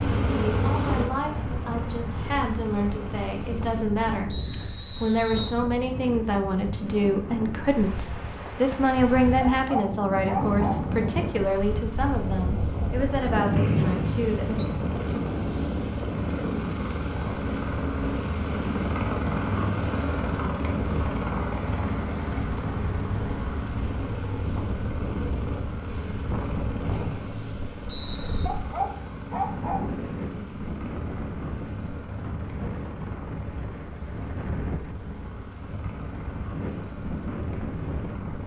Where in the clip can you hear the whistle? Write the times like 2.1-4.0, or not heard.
4.3-5.6, 13.6-14.6, 26.9-28.4.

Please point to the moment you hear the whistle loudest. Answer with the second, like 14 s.
14 s.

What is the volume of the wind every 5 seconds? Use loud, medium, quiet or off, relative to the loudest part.
medium, medium, loud, loud, medium, medium, medium, medium.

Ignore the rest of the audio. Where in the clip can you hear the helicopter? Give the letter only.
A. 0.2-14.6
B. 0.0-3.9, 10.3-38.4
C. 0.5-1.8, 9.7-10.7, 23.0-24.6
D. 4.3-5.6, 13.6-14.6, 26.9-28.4
B.